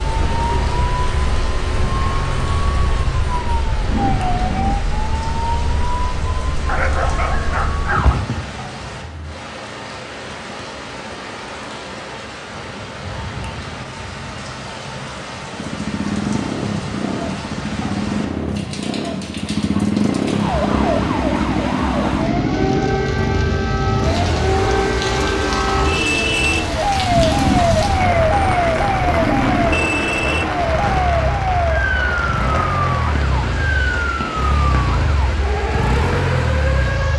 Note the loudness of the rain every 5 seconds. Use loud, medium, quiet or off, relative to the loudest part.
medium, medium, medium, medium, loud, loud, loud, medium.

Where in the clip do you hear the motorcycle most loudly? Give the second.
20 s.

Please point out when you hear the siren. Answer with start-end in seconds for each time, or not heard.
0.0-8.2, 20.4-37.1.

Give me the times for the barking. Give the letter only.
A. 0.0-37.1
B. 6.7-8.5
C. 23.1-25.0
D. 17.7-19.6
B.